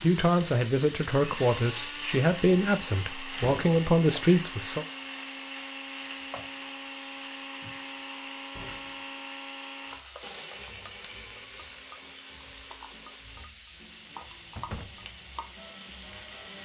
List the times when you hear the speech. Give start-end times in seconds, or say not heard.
0.0-4.8.